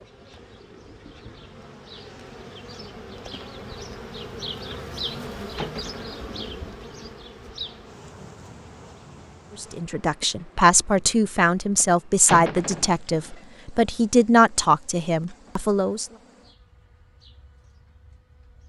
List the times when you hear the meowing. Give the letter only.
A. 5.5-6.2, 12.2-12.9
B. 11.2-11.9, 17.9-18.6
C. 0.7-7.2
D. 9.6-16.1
A.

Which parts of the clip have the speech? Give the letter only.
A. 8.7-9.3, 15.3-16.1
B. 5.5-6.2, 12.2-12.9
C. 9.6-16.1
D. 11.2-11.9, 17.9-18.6
C.